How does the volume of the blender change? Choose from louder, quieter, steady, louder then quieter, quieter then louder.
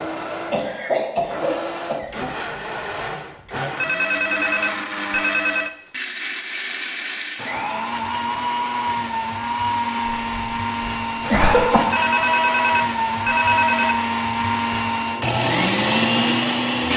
louder.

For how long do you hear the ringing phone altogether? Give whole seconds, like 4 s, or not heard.
4 s.